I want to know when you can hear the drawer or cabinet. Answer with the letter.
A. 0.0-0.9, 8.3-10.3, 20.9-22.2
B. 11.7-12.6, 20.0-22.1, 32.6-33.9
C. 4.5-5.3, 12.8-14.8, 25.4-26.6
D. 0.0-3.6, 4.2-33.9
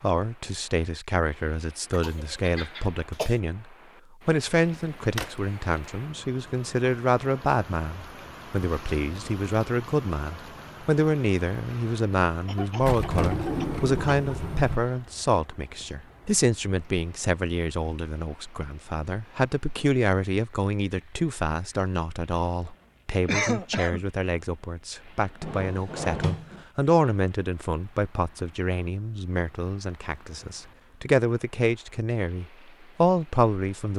C.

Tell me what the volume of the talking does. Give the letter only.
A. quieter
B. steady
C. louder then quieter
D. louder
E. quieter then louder
B.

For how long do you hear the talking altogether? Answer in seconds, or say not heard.
33 s.